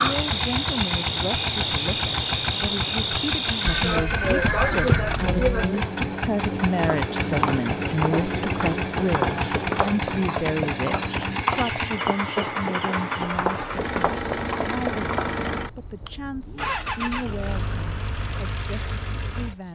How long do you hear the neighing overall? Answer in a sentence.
You can hear the neighing for 2 seconds altogether.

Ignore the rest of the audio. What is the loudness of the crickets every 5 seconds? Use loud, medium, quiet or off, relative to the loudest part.
loud, loud, medium, medium.